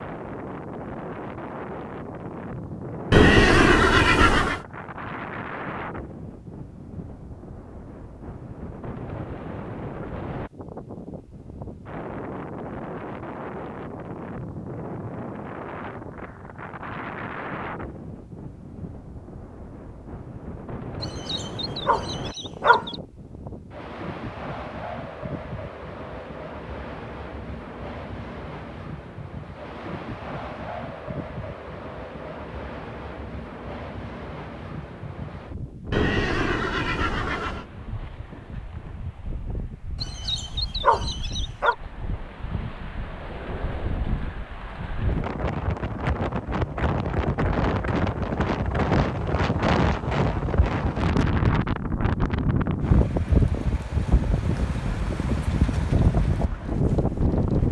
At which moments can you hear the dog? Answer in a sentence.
The dog can be heard from 21.0 to 22.9 s and from 40.0 to 41.8 s.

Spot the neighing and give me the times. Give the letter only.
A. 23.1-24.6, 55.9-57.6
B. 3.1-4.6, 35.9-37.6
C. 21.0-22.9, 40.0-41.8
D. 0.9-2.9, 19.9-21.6
B.